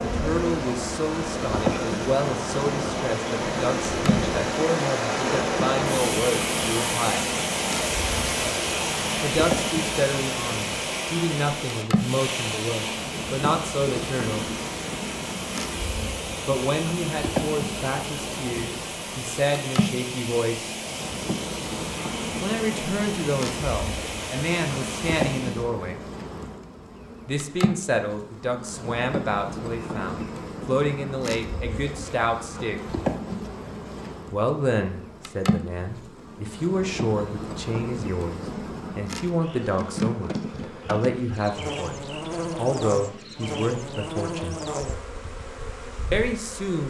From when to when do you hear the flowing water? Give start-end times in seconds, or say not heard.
0.0-25.7.